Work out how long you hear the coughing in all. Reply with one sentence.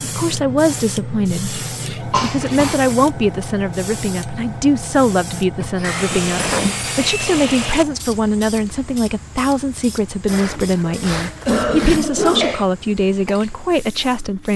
The coughing can be heard for 4 seconds in total.